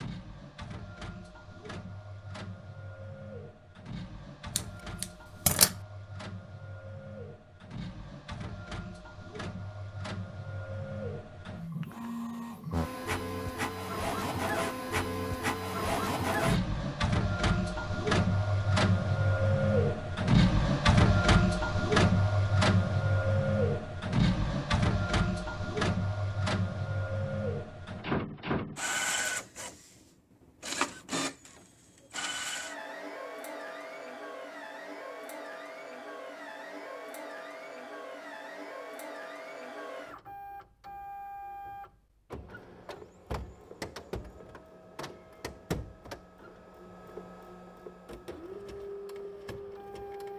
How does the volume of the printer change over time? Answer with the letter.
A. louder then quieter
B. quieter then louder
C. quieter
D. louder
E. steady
A.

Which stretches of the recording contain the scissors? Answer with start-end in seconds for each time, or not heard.
4.5-5.8.